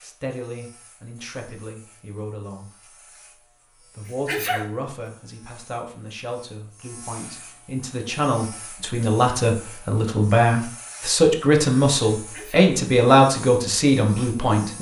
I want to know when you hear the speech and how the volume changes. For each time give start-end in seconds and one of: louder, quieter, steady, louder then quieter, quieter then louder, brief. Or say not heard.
0.0-2.7 brief
4.0-14.7 louder.